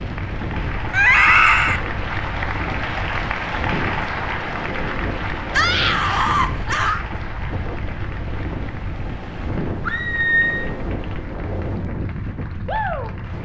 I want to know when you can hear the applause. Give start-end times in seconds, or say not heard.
0.0-13.4.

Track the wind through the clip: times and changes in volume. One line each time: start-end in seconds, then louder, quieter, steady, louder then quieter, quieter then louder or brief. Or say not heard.
0.0-13.4 steady.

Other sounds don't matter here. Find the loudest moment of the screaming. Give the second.
1 s.